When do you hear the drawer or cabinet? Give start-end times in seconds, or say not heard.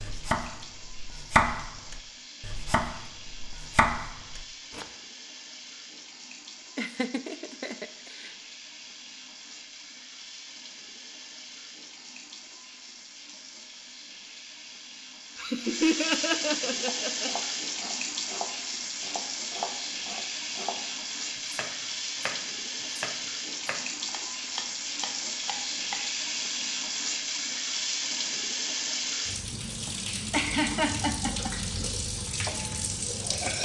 not heard.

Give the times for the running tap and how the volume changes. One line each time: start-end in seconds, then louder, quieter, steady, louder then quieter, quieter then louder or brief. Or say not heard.
0.0-33.6 louder.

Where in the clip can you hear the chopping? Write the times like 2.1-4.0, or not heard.
0.0-4.8, 16.8-26.1.